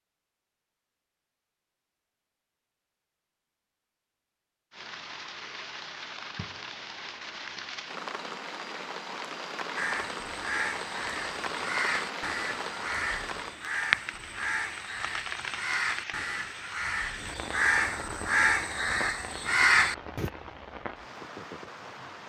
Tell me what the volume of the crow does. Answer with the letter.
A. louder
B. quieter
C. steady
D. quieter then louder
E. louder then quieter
A.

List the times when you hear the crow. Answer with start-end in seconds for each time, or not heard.
9.8-20.3.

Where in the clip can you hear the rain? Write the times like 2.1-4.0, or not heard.
4.7-22.2.